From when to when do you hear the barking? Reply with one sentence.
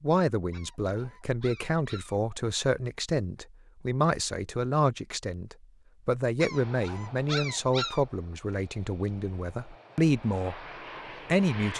You can hear the barking from 0.5 to 2.4 s and from 6.3 to 8.1 s.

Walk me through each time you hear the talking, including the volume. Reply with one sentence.
You can hear the talking from 0.0 to 10.7 s, at a steady volume; and briefly from 11.2 to 11.7 s.